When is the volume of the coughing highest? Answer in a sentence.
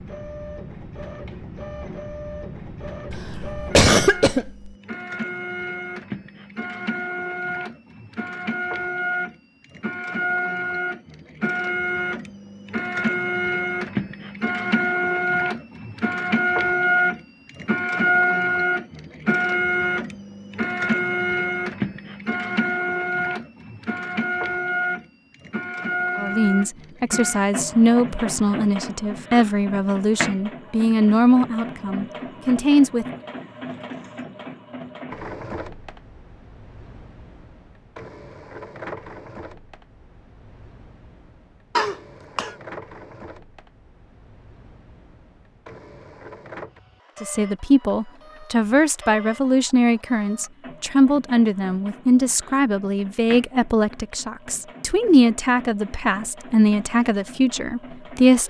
The loudest moment of the coughing is at 4 seconds.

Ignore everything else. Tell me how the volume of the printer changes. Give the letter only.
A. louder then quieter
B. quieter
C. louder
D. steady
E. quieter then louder
A.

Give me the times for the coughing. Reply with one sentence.
You can hear the coughing from 3.1 to 4.7 s and from 41.8 to 42.5 s.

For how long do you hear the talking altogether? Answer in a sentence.
The talking can be heard for 18 seconds in total.